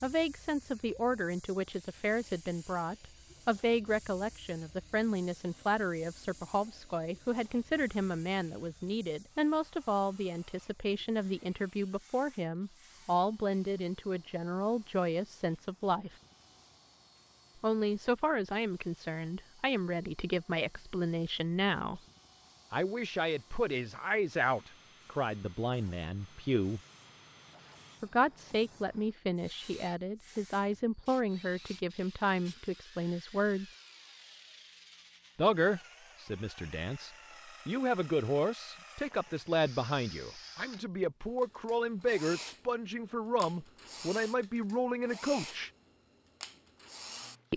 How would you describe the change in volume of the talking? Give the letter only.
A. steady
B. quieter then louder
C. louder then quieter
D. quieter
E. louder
A.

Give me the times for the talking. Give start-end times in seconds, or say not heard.
0.0-16.1, 17.6-22.0, 22.7-26.8, 28.0-33.7, 35.4-45.7.